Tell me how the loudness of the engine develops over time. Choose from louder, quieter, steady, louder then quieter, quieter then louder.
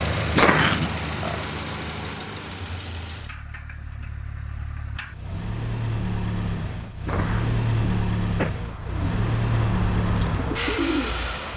quieter then louder.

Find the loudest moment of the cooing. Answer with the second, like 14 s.
11 s.